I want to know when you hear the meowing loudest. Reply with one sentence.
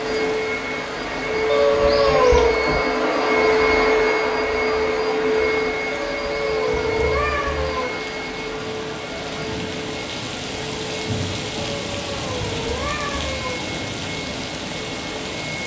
The volume of the meowing peaks at 2 seconds.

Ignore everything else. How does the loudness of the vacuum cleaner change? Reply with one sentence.
The loudness of the vacuum cleaner goes down.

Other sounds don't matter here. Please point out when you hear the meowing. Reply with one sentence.
You can hear the meowing from 1.4 to 2.5 s, from 5.9 to 7.9 s and from 11.6 to 13.6 s.